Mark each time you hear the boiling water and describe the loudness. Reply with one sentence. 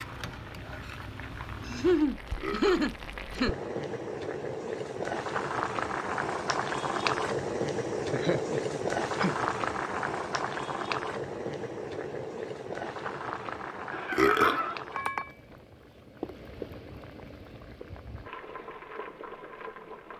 You can hear the boiling water from 0.0 to 20.1 s, getting louder then quieter.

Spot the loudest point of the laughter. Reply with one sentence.
The loudest moment of the laughter is at 2 seconds.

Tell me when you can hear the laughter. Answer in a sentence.
You can hear the laughter from 1.6 to 3.5 s, from 8.1 to 9.3 s and from 13.9 to 14.8 s.